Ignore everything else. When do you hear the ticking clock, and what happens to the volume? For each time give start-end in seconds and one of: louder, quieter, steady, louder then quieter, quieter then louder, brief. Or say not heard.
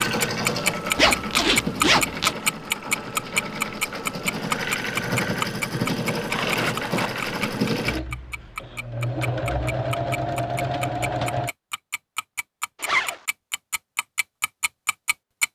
0.0-15.5 quieter.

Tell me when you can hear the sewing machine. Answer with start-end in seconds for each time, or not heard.
0.0-11.6.